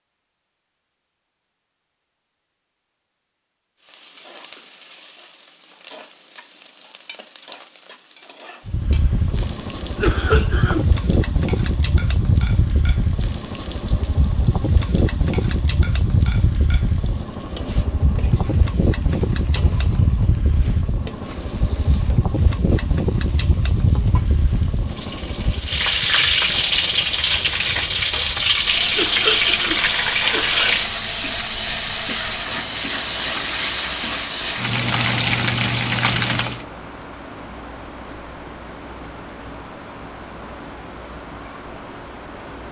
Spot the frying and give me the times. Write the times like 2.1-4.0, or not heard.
3.8-36.6.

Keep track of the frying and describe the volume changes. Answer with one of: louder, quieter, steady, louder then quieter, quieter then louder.
louder.